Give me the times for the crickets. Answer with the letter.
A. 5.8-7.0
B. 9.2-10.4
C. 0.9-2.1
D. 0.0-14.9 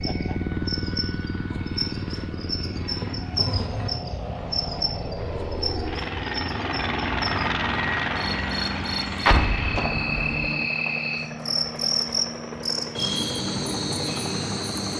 D.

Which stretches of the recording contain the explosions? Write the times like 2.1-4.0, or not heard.
9.2-10.4.